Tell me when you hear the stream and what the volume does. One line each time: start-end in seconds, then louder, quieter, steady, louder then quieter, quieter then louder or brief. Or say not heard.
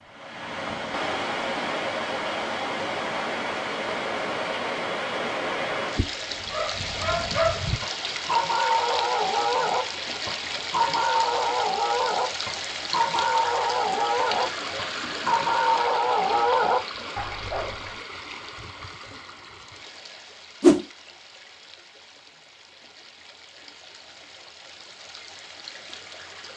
0.0-26.5 quieter.